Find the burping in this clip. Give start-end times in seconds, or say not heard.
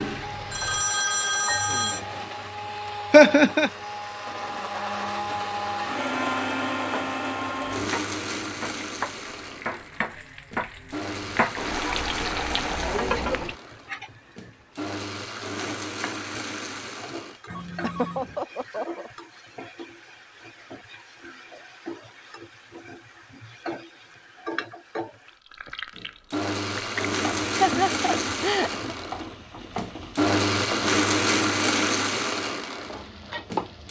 not heard.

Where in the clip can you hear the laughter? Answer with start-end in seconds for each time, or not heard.
3.1-3.7, 17.8-19.1, 27.4-28.9.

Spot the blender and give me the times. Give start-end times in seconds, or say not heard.
0.0-17.4, 25.9-33.8.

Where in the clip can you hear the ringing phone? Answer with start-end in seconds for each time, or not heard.
0.5-2.0, 17.4-18.4.